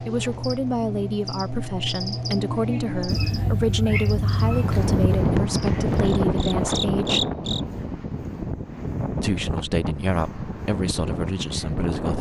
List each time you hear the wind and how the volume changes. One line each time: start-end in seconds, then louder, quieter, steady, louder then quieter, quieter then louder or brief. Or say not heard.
4.3-12.1 quieter.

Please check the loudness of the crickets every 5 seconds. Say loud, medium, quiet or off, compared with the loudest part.
loud, loud, off.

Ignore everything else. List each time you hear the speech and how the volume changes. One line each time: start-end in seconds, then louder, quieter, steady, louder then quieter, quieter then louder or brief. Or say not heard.
0.0-7.2 steady
9.2-12.1 brief.